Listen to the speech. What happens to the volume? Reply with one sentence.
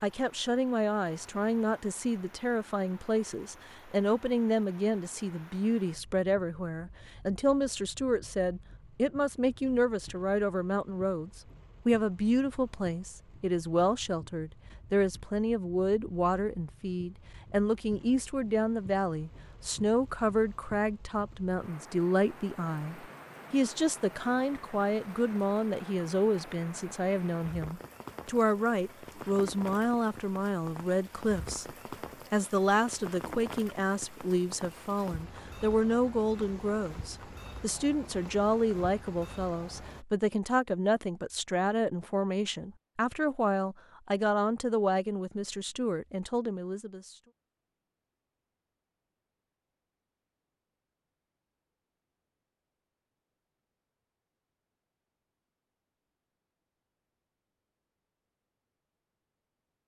The loudness of the speech stays about the same.